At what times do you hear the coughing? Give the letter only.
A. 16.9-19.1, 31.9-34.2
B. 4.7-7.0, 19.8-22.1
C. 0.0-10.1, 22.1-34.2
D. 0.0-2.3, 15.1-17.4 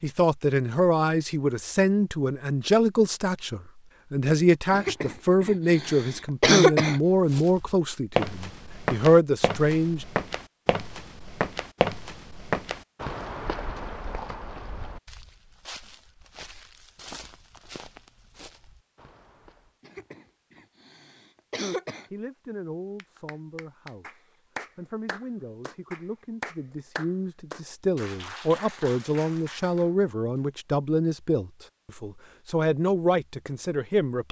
B.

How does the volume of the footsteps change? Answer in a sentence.
The volume of the footsteps goes down.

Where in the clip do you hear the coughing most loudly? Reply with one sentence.
The volume of the coughing peaks at 7 seconds.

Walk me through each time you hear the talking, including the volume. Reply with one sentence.
You can hear the talking from 0.0 to 10.1 s, at a steady volume; and from 22.1 to 34.2 s, getting louder.